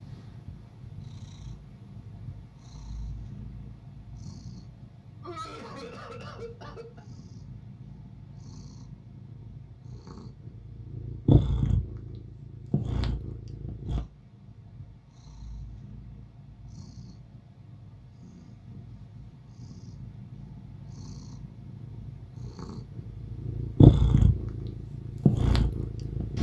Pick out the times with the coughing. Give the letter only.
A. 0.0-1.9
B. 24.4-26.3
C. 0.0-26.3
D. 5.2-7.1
D.